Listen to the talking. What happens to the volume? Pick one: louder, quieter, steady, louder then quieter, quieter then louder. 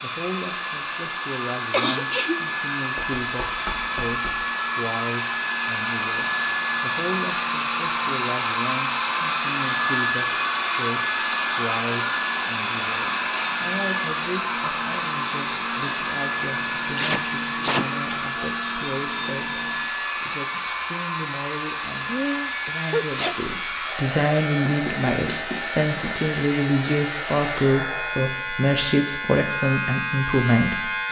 louder.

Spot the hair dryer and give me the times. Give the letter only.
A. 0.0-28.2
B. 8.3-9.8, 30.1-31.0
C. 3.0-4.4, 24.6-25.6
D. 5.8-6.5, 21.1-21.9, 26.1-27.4
A.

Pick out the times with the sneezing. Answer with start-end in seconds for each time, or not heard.
1.7-2.5, 16.9-17.9, 22.0-23.4.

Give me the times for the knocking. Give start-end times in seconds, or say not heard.
3.0-4.4, 24.6-25.6.